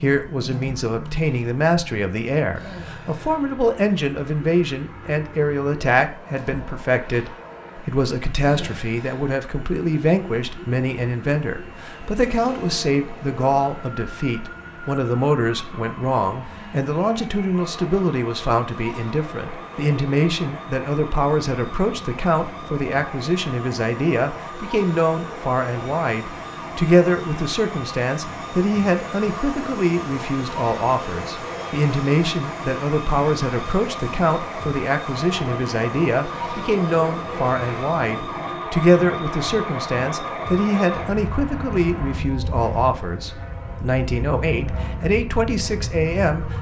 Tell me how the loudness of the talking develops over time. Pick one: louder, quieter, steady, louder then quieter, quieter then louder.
steady.